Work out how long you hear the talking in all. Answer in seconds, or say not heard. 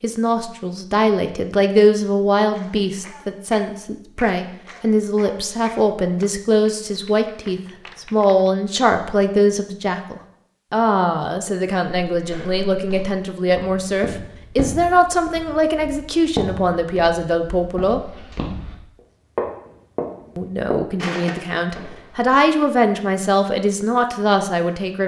23 s.